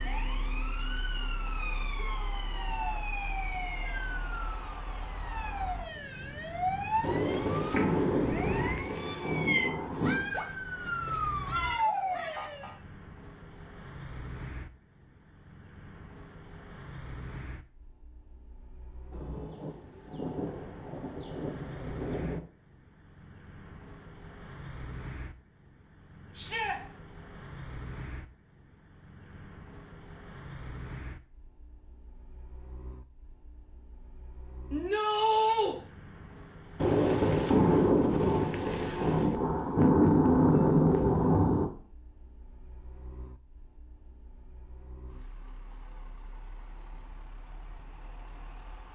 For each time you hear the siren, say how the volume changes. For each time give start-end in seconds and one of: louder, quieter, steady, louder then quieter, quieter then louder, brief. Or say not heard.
0.0-12.8 louder.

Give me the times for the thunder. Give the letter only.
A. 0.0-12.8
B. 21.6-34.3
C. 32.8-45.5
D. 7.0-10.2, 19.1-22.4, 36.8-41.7
D.